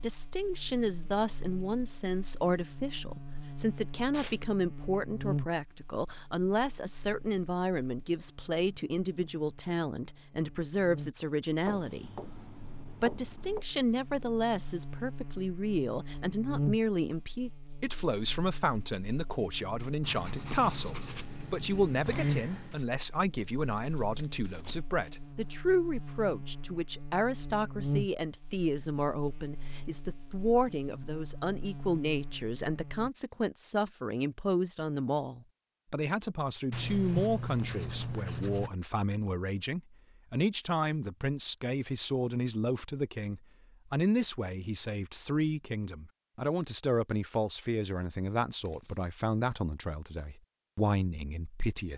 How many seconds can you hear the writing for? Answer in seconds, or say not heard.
7 s.